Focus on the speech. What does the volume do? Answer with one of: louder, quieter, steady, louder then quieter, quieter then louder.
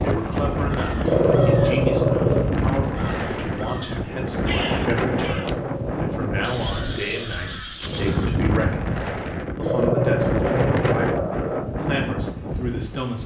steady.